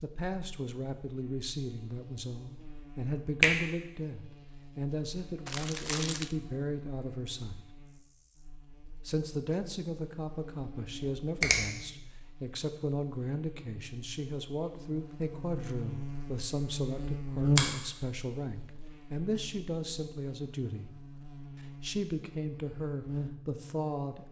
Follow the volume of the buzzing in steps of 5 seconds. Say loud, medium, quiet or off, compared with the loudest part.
quiet, quiet, quiet, loud, medium.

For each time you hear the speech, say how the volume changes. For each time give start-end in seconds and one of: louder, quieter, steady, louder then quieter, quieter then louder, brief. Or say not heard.
0.0-7.7 steady
9.1-20.9 steady
21.8-24.2 brief.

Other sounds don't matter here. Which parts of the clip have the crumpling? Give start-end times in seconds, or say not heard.
5.5-6.3.